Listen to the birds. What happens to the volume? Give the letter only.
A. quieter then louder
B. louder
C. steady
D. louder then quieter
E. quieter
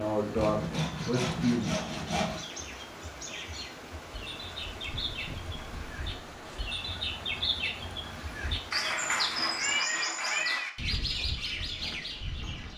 B.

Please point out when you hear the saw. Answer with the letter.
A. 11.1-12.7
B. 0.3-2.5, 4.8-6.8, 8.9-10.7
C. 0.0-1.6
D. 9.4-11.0
B.